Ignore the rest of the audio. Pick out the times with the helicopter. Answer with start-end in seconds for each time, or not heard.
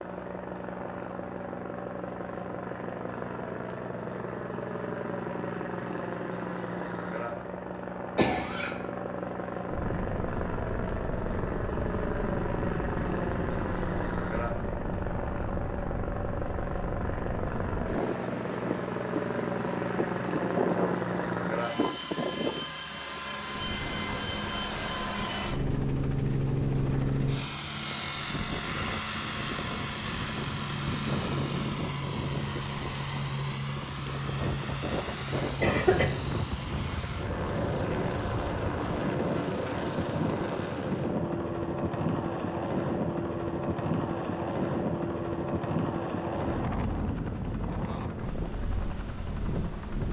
0.0-50.0.